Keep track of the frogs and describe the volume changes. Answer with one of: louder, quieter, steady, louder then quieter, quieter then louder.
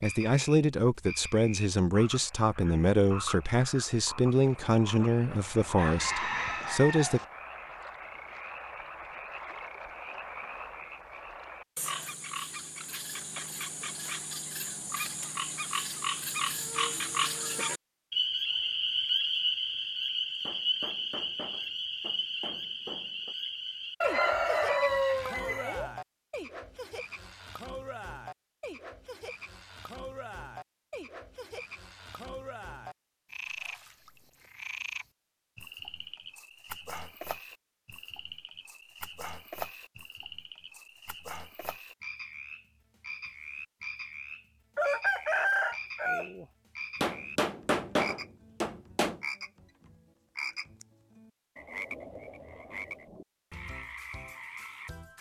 louder then quieter.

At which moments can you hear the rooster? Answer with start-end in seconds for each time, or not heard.
5.8-7.2, 24.0-25.9, 44.8-46.5.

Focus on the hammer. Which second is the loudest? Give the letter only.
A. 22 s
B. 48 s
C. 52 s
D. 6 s
B.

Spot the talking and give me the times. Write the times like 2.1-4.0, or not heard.
0.0-7.2.